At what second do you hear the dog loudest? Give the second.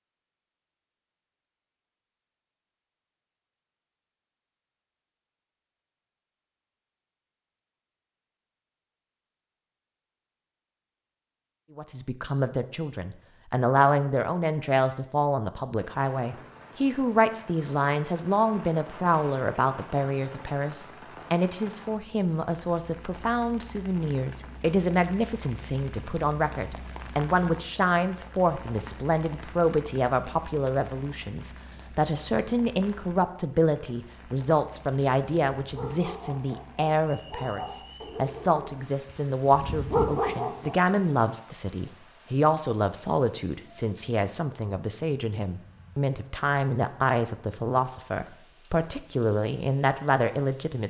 40 s.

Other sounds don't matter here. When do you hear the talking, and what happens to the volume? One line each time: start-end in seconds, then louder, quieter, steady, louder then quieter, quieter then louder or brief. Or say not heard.
11.8-50.8 steady.